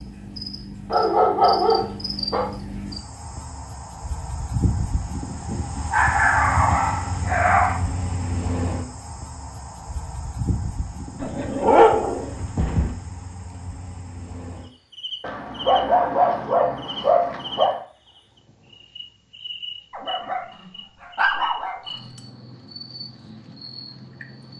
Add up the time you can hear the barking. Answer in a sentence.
The barking can be heard for 10 seconds in total.